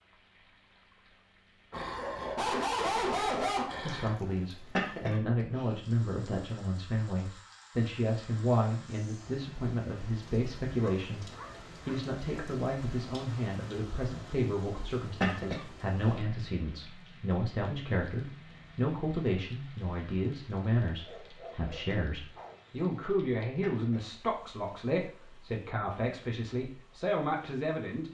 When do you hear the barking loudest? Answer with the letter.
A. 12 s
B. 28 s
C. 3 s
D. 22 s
C.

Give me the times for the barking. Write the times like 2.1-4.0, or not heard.
1.7-4.5, 10.8-12.0, 21.0-22.8.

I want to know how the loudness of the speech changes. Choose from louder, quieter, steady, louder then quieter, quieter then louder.
steady.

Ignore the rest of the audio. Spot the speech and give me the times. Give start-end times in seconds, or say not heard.
3.8-28.0.